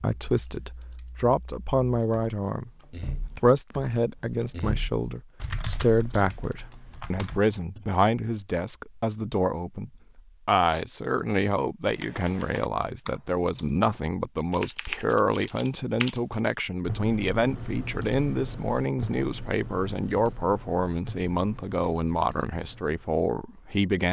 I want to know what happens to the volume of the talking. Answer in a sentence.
The volume of the talking stays about the same.